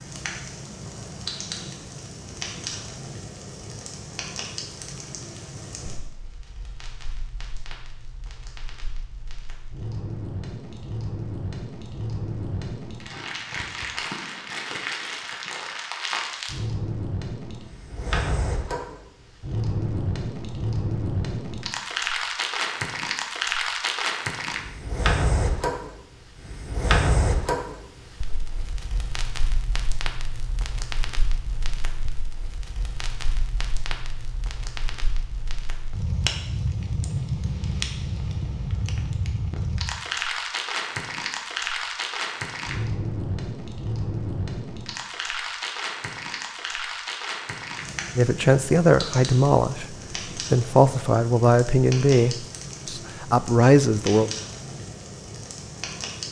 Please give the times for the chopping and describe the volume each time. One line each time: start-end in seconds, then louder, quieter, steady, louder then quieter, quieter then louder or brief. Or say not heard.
not heard.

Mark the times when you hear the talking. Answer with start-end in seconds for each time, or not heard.
48.1-54.3.